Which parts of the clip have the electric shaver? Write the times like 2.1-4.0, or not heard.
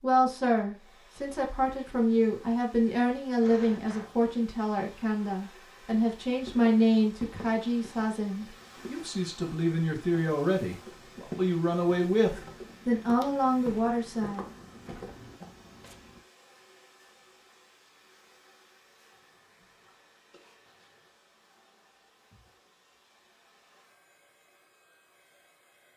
not heard.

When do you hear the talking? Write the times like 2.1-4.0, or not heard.
0.0-14.4.